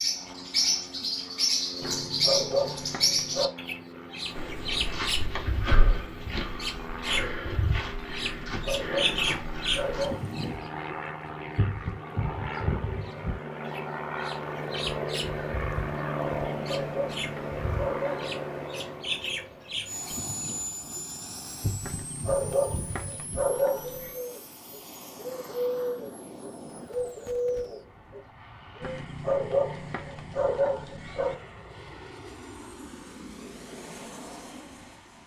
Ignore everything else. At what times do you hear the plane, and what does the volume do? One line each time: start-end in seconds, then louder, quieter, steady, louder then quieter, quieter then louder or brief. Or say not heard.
0.0-35.2 louder then quieter.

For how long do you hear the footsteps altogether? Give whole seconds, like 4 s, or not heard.
6 s.